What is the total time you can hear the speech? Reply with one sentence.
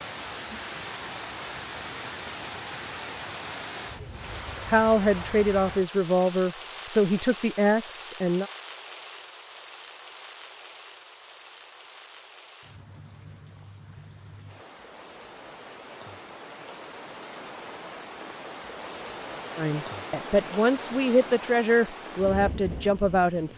You can hear the speech for 8 seconds altogether.